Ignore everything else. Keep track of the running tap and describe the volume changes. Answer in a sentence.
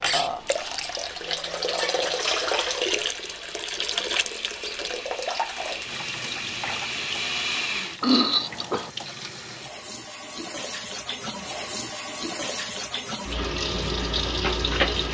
The volume of the running tap goes down, then up.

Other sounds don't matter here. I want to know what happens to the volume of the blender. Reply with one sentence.
The volume of the blender goes up.